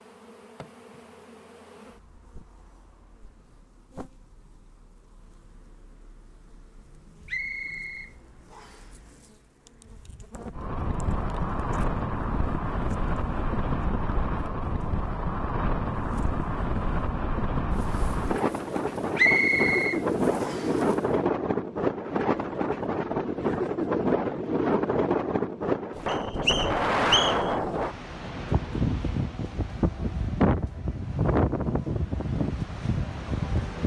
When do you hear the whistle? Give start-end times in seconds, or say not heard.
7.2-8.9, 19.1-20.8, 26.1-27.5.